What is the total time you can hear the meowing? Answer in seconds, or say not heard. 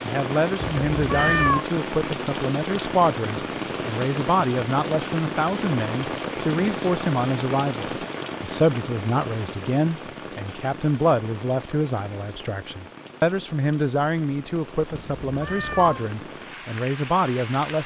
2 s.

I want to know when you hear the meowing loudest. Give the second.
1 s.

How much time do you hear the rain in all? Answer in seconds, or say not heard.
18 s.